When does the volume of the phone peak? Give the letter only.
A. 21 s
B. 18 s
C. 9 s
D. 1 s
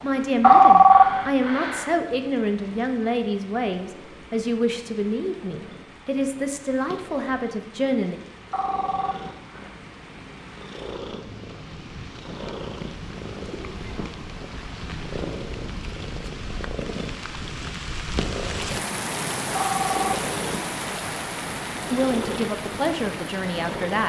D.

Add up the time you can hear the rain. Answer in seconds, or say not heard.
24 s.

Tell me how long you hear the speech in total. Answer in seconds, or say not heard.
10 s.